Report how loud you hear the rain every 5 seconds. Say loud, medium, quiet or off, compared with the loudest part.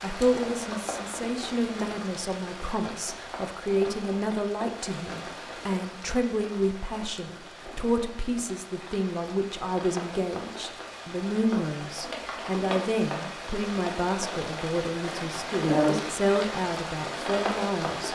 medium, quiet, medium, loud.